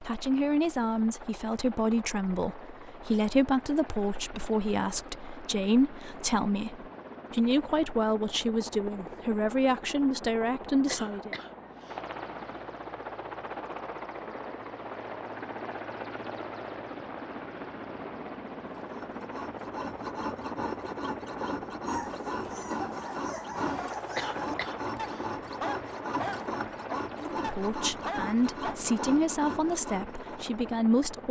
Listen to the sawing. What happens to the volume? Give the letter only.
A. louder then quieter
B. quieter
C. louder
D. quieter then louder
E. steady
E.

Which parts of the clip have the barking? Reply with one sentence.
You can hear the barking from 21.9 to 28.8 s.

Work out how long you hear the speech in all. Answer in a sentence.
You can hear the speech for 15 seconds altogether.